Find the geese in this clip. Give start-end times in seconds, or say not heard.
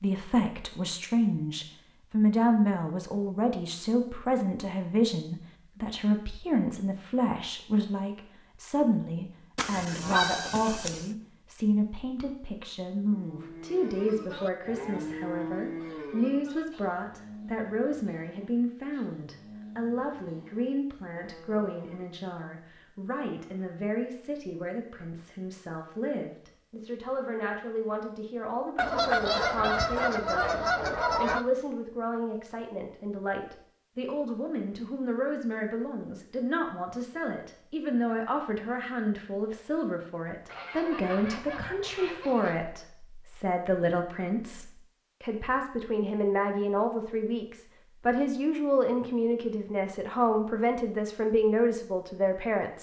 9.6-11.1, 28.8-31.4, 40.5-42.6.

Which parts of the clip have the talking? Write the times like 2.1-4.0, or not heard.
0.0-52.7.